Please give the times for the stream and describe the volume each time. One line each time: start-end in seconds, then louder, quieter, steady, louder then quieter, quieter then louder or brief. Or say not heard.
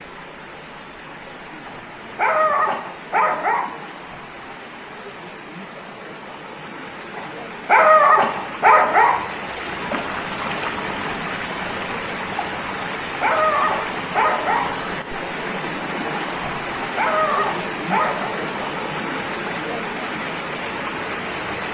0.0-21.7 louder.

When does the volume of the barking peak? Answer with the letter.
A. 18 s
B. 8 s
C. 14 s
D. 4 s
B.